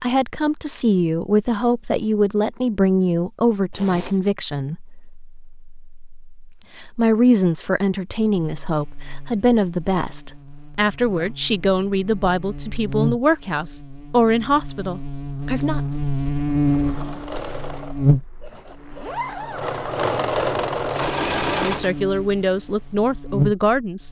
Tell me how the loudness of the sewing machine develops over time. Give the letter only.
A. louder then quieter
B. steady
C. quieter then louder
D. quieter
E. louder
C.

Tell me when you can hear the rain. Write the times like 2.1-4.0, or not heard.
not heard.